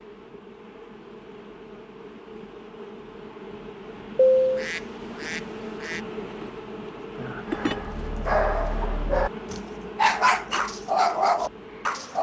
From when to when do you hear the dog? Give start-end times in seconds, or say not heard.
7.5-12.1.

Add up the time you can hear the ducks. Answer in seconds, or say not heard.
2 s.